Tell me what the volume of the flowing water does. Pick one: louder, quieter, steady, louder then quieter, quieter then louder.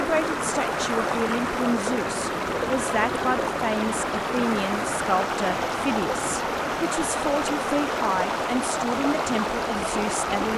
steady.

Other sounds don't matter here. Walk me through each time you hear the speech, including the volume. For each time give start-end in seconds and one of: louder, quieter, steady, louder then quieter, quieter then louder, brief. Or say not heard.
0.0-10.5 steady.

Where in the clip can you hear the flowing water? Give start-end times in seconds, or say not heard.
0.0-10.5.